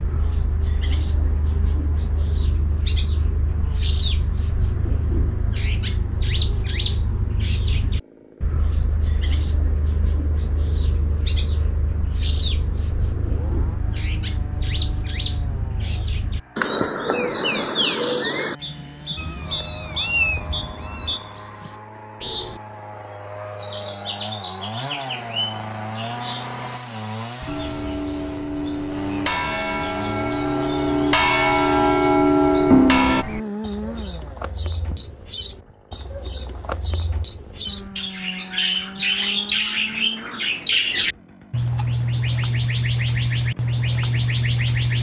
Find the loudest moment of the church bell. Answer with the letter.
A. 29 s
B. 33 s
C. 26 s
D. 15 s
B.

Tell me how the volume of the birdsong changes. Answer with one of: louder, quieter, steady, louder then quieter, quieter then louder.
quieter then louder.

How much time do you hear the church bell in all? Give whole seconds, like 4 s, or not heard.
6 s.